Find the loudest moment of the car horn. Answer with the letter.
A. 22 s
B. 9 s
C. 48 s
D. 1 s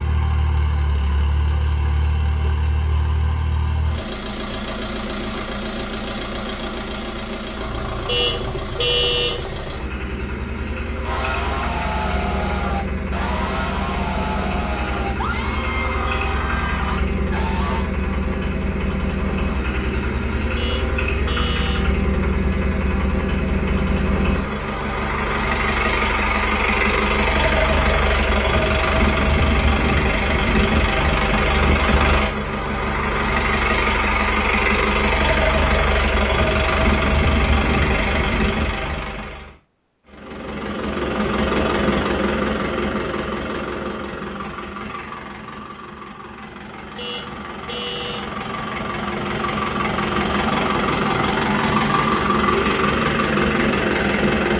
B.